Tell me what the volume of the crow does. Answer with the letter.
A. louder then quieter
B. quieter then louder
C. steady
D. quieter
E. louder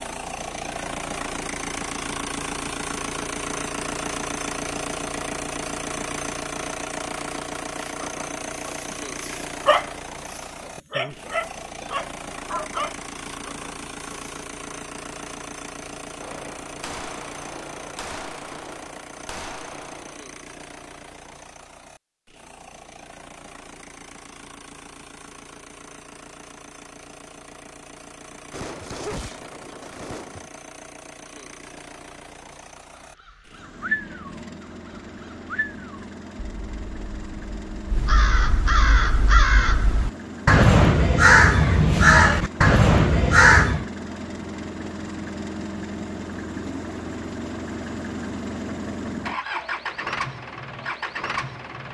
E.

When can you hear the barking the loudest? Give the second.
10 s.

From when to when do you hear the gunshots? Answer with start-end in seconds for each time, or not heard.
16.2-20.2, 28.5-30.5.